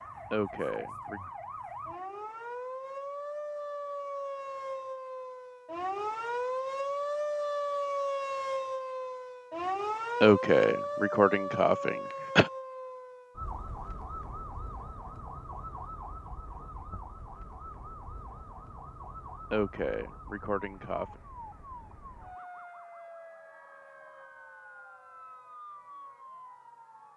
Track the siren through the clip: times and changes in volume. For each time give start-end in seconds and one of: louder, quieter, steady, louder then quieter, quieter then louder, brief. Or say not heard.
0.0-27.1 louder then quieter.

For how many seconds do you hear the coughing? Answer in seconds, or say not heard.
5 s.